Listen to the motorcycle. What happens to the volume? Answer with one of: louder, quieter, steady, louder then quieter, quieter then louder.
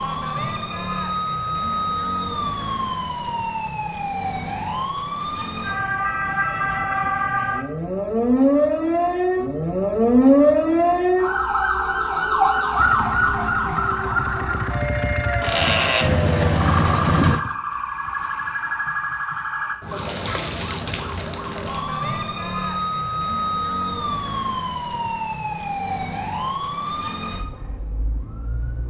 louder.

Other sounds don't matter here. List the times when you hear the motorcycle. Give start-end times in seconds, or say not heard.
12.8-17.5.